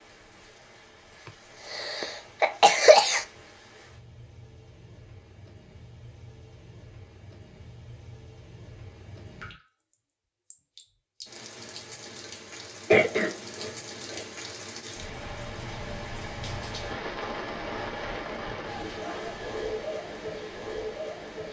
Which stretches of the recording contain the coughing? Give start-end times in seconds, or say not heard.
1.7-3.2, 12.9-14.2.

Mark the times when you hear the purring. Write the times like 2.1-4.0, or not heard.
not heard.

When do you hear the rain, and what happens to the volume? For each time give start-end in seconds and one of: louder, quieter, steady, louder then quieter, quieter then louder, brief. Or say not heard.
0.0-21.4 louder.